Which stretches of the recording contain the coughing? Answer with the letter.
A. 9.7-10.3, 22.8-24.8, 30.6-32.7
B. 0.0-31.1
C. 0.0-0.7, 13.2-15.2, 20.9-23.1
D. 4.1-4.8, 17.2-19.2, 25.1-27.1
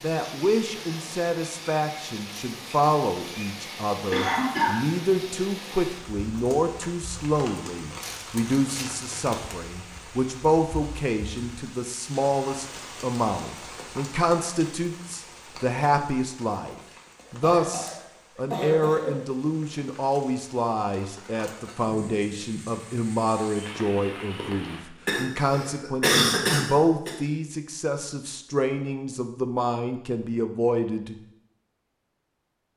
D.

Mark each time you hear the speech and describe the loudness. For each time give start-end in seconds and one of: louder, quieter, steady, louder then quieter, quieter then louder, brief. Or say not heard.
0.0-31.1 steady.